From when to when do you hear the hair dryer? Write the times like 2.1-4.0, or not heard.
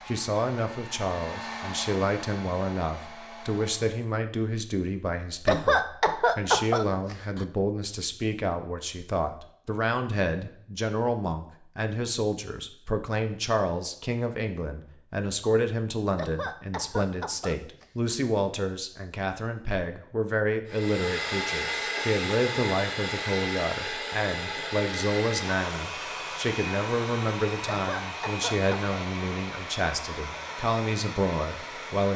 0.0-4.0, 20.6-32.1.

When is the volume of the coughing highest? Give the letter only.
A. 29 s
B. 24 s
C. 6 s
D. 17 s
C.